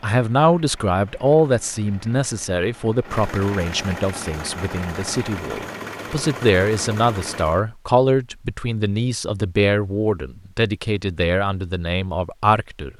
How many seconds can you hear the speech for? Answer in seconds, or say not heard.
13 s.